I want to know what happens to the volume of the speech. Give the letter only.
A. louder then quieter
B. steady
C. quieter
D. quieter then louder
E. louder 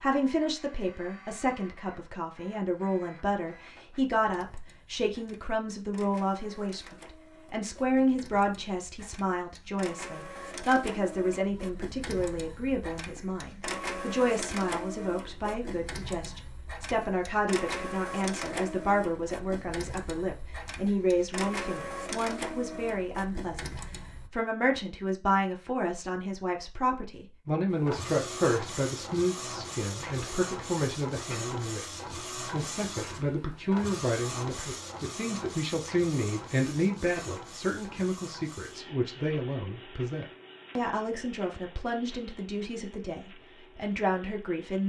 B.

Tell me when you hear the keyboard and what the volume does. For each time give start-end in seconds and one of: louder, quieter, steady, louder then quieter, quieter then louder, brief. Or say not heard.
not heard.